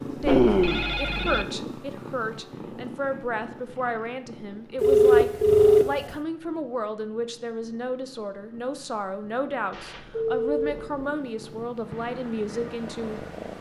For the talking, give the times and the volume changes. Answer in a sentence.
The talking can be heard from 0.1 to 13.5 s, at a steady volume.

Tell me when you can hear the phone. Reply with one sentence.
The phone can be heard from 0.2 to 1.4 s, from 4.8 to 5.8 s and from 9.7 to 10.9 s.